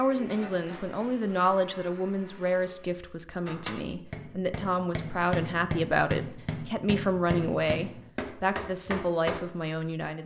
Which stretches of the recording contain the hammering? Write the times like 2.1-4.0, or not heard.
3.5-9.4.